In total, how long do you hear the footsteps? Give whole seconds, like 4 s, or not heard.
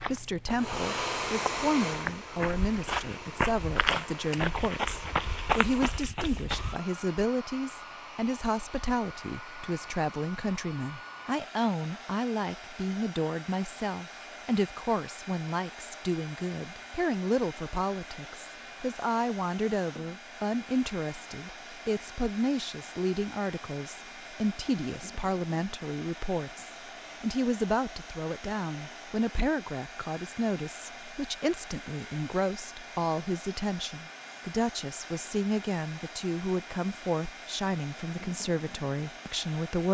7 s.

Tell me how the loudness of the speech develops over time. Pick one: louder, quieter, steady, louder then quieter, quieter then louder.
steady.